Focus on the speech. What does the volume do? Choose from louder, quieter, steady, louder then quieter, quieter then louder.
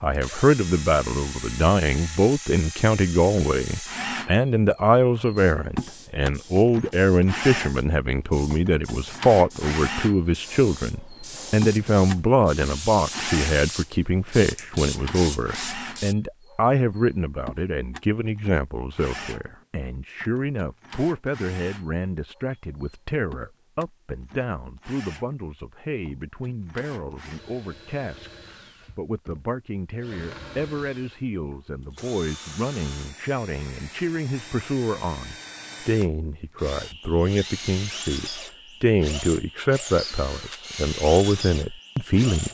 quieter then louder.